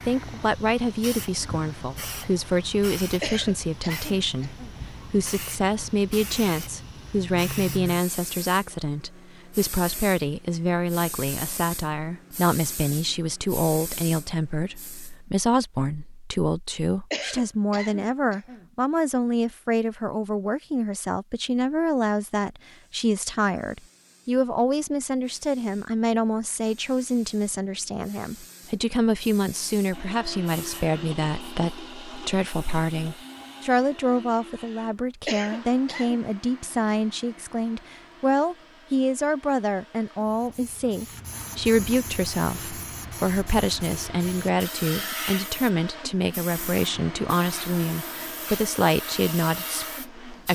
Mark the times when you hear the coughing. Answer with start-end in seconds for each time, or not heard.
3.2-4.8, 17.1-18.7, 35.2-36.2.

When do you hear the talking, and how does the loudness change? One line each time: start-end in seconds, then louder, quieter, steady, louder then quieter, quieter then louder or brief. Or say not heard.
0.1-50.4 steady.